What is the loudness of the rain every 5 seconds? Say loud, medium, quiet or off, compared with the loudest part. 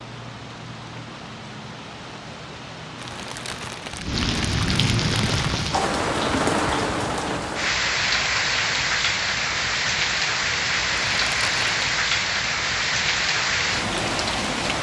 medium, loud, loud.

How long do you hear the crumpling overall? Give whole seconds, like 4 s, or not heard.
4 s.